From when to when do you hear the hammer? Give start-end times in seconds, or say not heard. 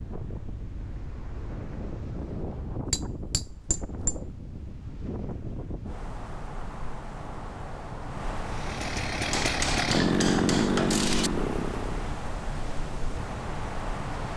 2.9-4.2, 9.3-11.3.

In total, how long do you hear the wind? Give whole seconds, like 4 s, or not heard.
14 s.